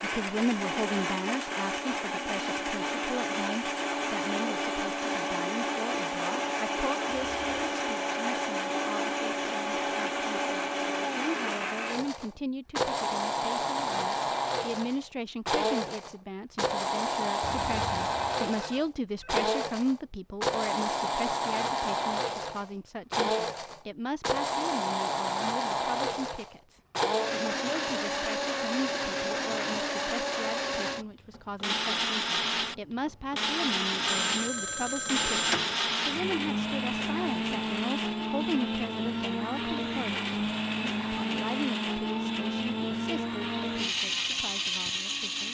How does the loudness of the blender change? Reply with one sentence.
The volume of the blender stays about the same.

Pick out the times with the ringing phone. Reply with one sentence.
The ringing phone can be heard from 7.1 to 7.8 s, from 17.4 to 19.3 s and from 33.9 to 35.8 s.